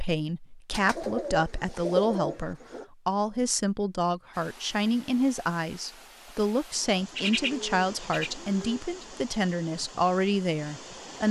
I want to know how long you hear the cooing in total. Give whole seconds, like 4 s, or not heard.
4 s.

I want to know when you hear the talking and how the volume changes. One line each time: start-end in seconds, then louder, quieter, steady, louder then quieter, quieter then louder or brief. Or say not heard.
0.0-11.2 steady.